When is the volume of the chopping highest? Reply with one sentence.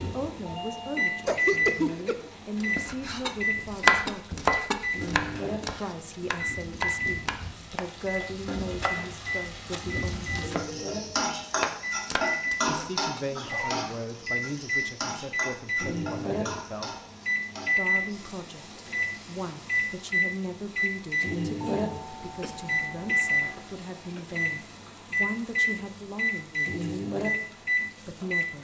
The volume of the chopping peaks at 4 seconds.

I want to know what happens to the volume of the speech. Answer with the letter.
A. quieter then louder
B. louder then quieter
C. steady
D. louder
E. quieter
C.